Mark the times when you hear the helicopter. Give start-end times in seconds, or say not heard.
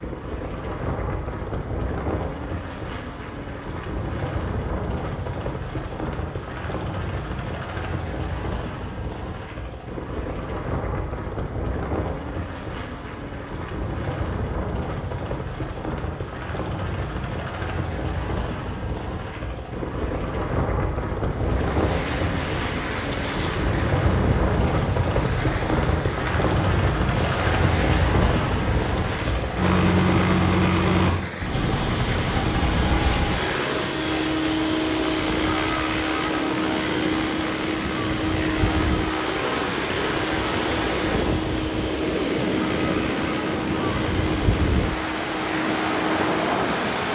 0.0-47.0.